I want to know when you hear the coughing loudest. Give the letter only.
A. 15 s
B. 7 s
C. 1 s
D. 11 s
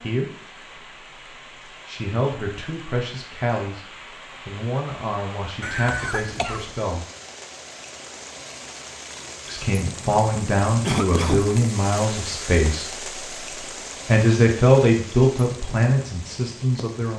D.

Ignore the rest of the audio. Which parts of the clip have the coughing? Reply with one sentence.
You can hear the coughing from 5.6 to 6.8 s and from 10.8 to 11.4 s.